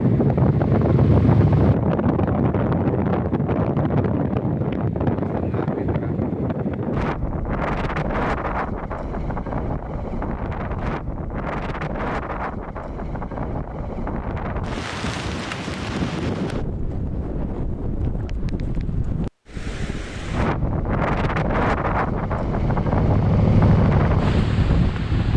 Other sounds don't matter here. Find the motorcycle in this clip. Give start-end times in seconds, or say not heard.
0.0-1.8, 20.4-25.3.